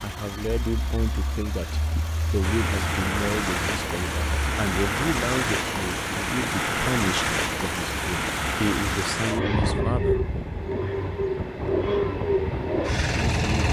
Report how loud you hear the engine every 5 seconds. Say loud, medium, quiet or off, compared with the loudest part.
medium, medium, loud.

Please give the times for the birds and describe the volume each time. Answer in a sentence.
The birds can't be heard in this clip.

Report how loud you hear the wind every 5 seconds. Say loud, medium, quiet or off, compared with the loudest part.
loud, loud, medium.